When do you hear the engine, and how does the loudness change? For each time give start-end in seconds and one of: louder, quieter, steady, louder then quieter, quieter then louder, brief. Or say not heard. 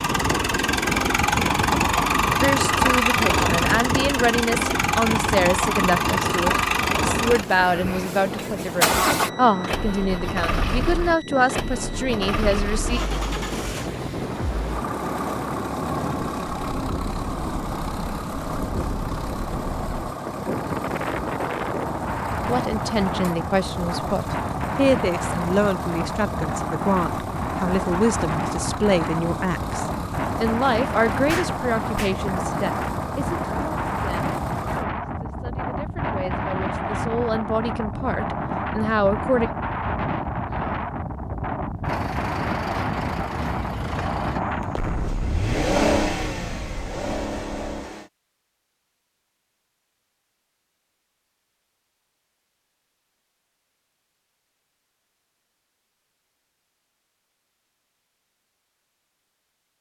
0.0-34.9 quieter
41.9-48.1 louder then quieter.